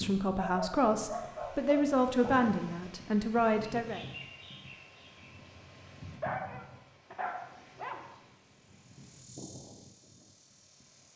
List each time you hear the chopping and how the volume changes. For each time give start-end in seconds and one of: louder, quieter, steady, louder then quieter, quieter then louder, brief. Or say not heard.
not heard.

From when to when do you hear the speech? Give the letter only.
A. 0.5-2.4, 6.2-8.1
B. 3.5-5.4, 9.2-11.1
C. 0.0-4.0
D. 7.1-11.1
C.